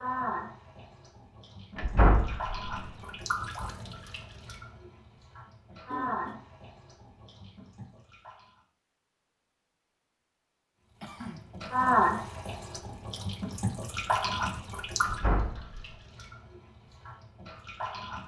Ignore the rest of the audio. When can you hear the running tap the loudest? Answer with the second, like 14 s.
12 s.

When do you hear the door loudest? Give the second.
2 s.